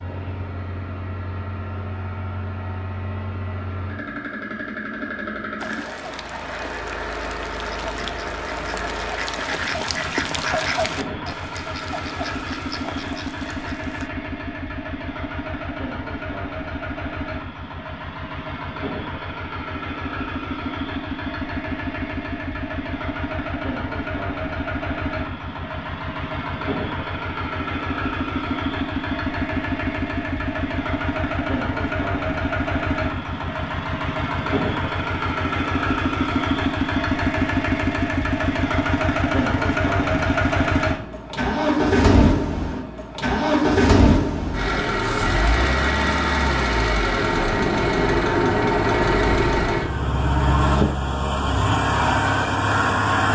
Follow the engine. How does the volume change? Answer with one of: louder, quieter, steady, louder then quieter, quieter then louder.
louder.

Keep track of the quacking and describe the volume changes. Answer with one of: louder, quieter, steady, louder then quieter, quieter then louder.
louder then quieter.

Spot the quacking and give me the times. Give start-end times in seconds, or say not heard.
5.5-14.1.